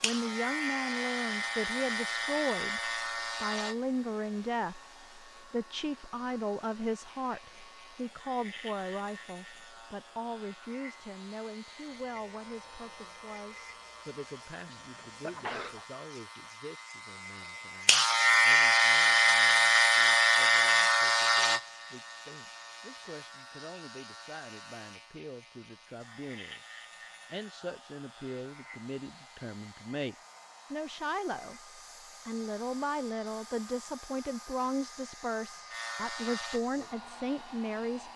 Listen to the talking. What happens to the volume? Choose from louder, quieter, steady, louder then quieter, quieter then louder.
quieter then louder.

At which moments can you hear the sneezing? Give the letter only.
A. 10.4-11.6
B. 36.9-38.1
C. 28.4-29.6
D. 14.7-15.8
D.